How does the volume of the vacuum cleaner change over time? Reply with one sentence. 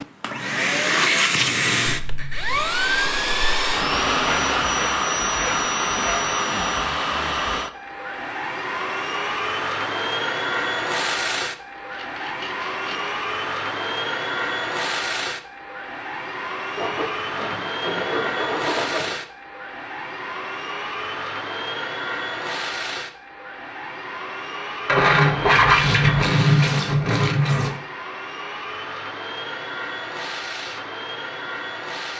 The volume of the vacuum cleaner goes down.